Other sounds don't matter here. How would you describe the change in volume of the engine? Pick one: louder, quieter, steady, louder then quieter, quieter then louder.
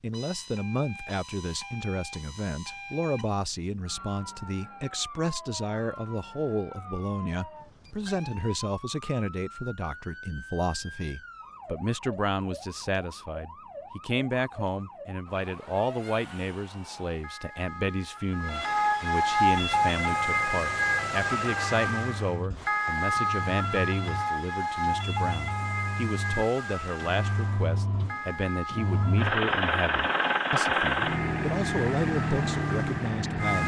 louder.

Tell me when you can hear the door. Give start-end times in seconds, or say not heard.
not heard.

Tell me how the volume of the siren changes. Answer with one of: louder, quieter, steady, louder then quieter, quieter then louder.
louder then quieter.